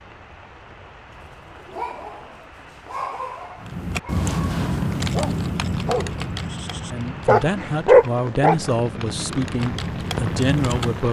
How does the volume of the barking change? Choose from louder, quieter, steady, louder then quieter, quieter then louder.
louder.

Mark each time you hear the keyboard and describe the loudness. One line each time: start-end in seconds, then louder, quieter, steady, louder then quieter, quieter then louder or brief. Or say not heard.
3.5-11.0 quieter then louder.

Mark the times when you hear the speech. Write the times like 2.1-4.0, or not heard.
6.9-11.0.